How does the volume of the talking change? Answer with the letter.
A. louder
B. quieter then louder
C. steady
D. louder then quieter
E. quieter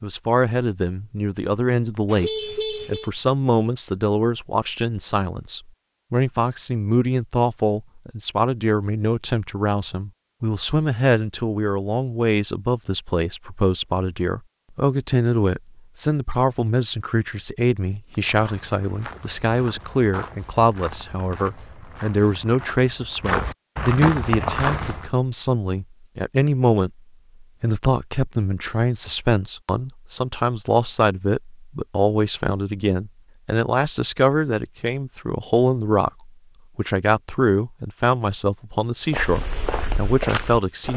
C.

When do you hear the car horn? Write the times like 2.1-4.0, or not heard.
2.0-3.1.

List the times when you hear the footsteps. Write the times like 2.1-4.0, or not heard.
18.1-25.1, 39.0-40.9.